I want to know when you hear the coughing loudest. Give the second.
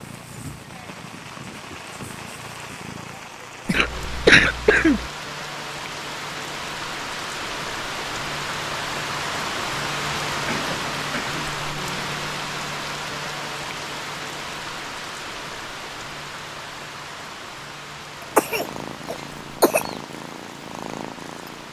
4 s.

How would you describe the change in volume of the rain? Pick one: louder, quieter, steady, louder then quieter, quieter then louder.
louder then quieter.